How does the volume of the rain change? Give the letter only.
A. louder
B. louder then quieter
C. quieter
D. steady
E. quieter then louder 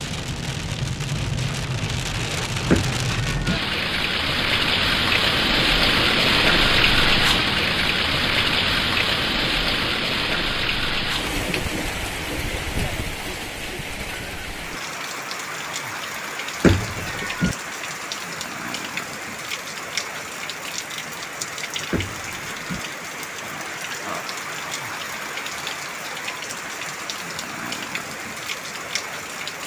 C.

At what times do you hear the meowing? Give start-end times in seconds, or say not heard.
2.7-3.6, 16.6-17.6, 21.9-22.8.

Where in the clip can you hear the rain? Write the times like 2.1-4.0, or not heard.
0.0-29.6.